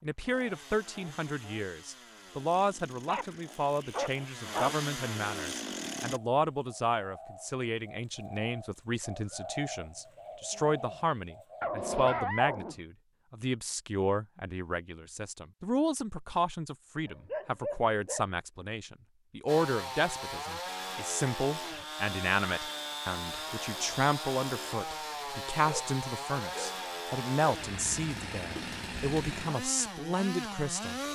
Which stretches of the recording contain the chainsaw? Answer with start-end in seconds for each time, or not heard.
0.1-6.2, 19.4-31.0.